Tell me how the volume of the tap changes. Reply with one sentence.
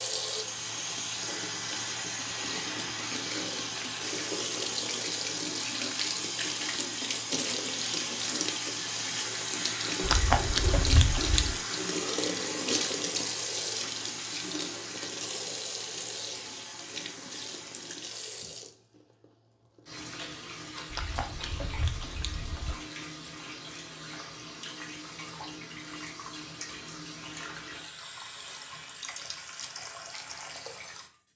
The loudness of the tap goes down.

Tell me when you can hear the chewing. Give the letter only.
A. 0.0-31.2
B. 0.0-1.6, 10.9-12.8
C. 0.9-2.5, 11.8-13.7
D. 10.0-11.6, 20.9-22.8
D.